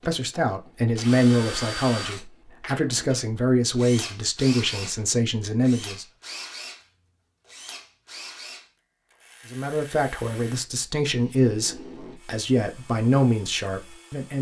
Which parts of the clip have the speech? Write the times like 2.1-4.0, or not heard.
0.1-6.0, 9.5-14.3.